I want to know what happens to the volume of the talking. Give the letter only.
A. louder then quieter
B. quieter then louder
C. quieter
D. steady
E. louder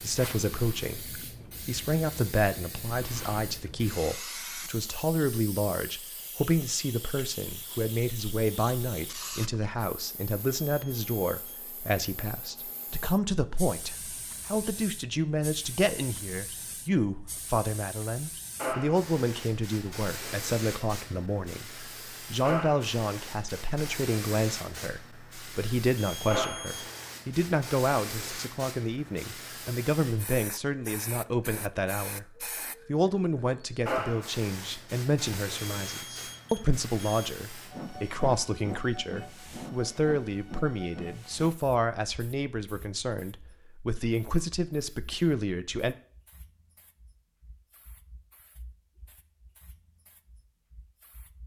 D.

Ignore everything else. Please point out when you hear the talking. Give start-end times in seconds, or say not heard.
0.0-46.0.